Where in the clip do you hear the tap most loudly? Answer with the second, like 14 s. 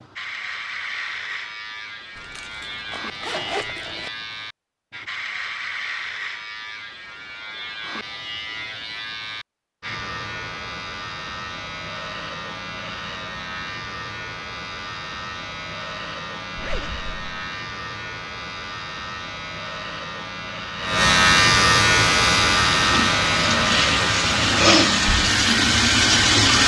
26 s.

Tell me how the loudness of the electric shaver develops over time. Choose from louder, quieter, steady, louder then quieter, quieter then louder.
louder.